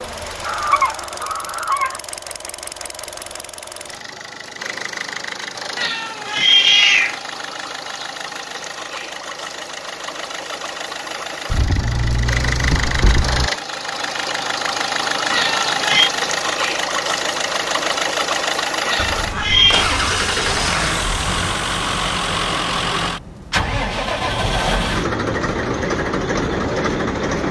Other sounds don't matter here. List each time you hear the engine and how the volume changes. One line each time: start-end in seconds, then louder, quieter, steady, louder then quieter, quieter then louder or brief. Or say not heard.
0.0-27.4 louder.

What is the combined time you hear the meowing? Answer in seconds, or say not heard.
3 s.